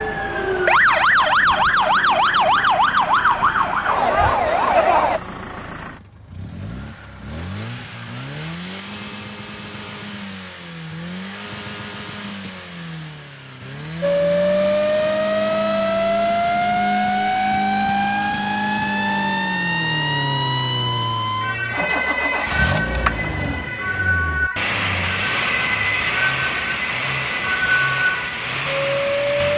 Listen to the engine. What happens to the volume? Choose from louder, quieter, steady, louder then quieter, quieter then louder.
louder.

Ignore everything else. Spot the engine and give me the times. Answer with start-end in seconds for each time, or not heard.
0.0-29.5.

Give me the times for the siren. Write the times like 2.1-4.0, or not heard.
0.0-5.2, 14.0-29.5.